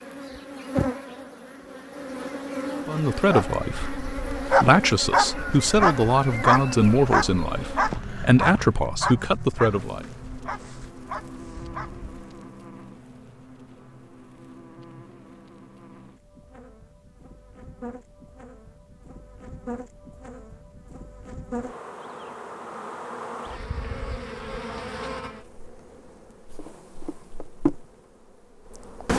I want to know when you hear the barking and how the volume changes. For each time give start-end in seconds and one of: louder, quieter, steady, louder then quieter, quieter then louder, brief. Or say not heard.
3.2-12.4 quieter.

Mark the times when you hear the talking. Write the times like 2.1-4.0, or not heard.
2.9-10.1.